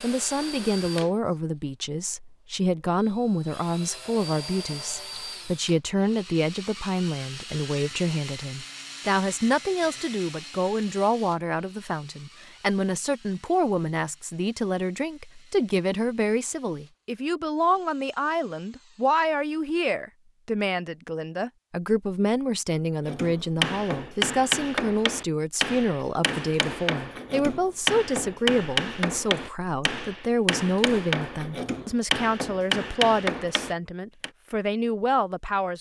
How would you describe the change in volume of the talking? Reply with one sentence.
The volume of the talking stays about the same.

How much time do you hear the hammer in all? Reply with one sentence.
You can hear the hammer for 11 seconds altogether.